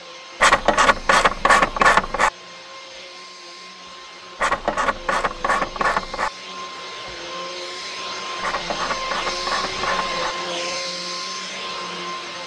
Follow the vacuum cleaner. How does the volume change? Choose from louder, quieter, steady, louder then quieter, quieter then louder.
louder.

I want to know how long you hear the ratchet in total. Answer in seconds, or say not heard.
6 s.